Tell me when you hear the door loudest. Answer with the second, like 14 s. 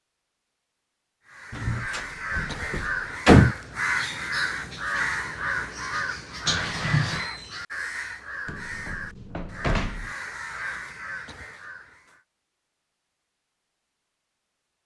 3 s.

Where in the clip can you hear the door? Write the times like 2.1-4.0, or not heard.
1.5-3.5, 8.4-10.2.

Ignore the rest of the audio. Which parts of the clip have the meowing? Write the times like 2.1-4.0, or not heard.
6.5-7.3.